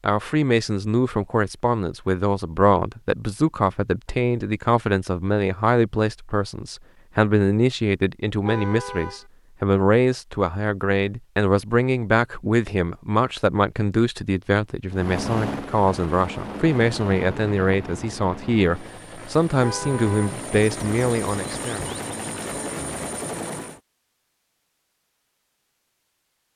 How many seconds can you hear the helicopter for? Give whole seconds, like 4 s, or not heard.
9 s.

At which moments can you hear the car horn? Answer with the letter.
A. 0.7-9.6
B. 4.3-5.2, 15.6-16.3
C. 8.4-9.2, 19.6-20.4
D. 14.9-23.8
C.